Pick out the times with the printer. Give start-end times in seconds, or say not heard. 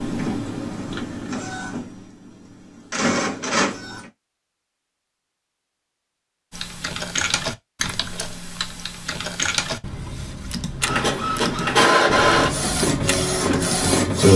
0.0-4.0, 10.8-14.3.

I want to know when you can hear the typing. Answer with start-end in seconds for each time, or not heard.
6.5-13.9.